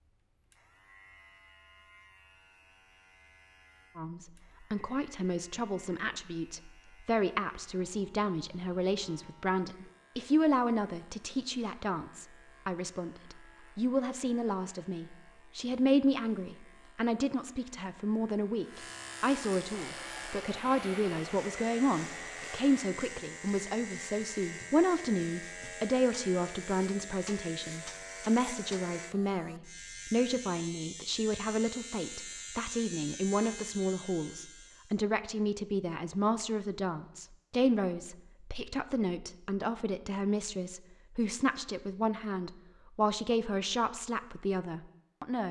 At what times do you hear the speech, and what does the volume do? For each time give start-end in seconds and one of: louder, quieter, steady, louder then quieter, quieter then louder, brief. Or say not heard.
4.0-45.4 steady.